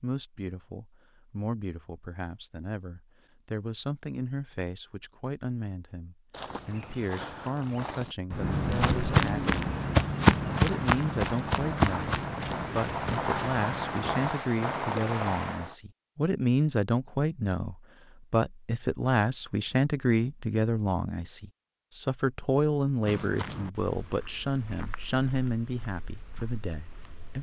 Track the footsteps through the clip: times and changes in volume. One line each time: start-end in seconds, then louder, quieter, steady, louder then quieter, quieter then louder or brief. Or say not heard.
6.3-14.3 louder then quieter
23.1-27.3 quieter.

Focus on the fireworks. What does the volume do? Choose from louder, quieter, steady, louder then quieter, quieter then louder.
louder.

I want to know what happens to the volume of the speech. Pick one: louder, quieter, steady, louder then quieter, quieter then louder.
louder.